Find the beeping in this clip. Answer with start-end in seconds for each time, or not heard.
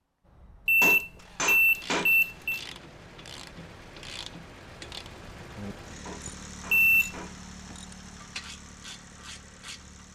0.7-2.6, 6.7-7.2.